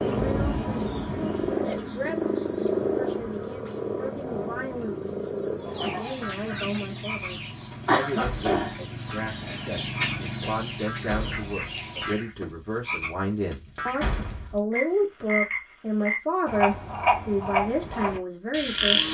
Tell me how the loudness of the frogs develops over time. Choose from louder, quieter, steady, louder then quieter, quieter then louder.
quieter then louder.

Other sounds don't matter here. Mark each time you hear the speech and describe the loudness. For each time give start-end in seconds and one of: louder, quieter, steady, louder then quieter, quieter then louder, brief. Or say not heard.
0.2-19.1 louder.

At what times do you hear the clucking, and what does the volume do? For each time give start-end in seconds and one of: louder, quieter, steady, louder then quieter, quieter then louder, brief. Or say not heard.
5.6-12.3 louder then quieter.